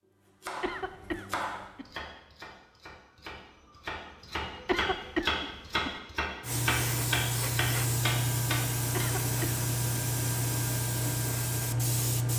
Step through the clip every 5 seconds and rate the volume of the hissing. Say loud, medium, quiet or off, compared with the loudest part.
off, loud, loud.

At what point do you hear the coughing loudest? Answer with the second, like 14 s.
5 s.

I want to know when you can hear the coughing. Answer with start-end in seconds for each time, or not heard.
0.6-1.9, 4.7-6.0, 8.9-9.6.